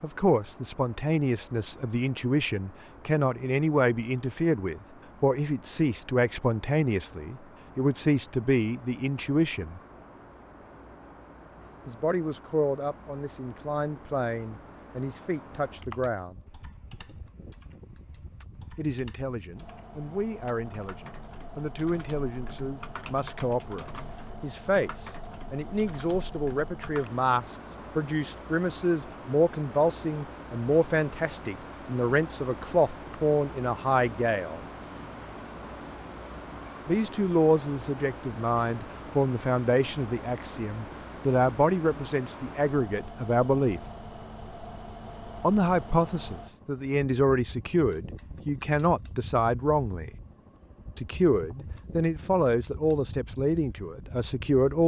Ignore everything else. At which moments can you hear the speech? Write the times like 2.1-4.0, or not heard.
0.0-9.8, 11.8-16.4, 18.8-34.6, 36.9-43.8, 45.4-50.1, 51.0-54.8.